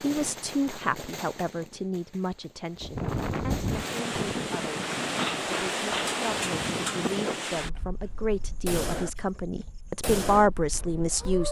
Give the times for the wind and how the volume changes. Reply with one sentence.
The wind can be heard from 2.8 to 11.4 s, getting quieter.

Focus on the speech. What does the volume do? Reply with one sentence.
The loudness of the speech goes down, then up.